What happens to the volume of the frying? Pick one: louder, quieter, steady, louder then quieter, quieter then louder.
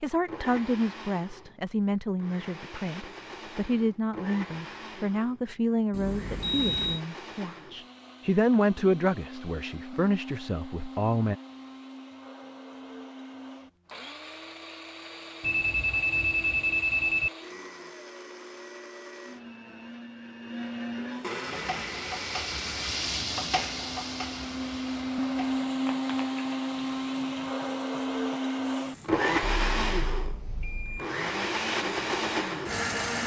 quieter.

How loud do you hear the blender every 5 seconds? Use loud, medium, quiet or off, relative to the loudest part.
quiet, quiet, quiet, quiet, medium, loud, loud.